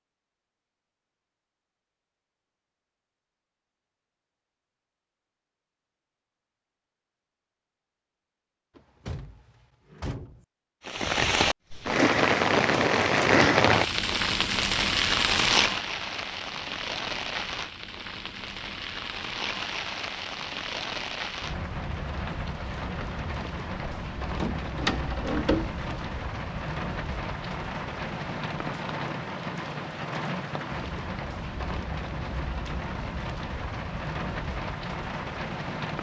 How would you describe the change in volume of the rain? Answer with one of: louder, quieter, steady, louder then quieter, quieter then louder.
quieter.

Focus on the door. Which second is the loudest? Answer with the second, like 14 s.
25 s.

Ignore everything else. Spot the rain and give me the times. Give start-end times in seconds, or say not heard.
10.8-35.9.